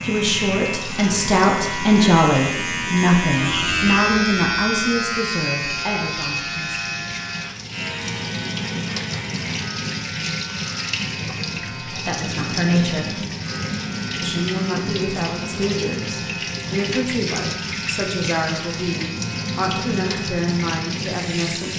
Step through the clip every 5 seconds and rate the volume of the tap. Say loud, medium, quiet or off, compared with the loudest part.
medium, loud, loud, loud, loud.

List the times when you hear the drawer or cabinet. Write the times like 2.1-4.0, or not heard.
not heard.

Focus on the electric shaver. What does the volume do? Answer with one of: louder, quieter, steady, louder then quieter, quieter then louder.
quieter.